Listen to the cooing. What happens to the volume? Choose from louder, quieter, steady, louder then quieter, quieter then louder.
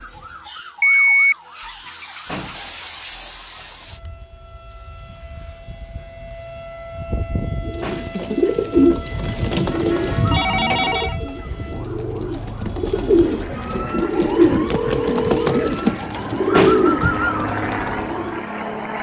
quieter then louder.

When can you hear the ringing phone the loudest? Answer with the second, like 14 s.
1 s.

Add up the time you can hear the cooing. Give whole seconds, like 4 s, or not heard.
11 s.